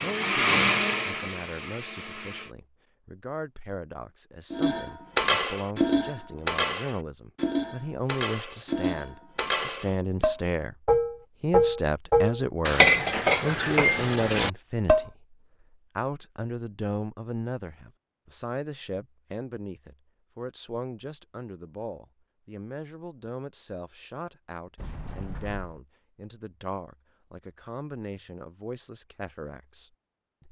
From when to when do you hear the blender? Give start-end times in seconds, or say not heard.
0.0-2.5.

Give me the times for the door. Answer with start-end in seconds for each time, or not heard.
24.8-25.6.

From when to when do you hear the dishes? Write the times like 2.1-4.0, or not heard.
4.5-15.1.